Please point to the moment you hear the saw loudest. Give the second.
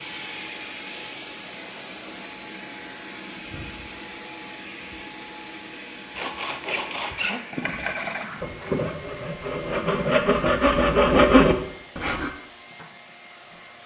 11 s.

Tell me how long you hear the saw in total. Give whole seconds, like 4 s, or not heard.
6 s.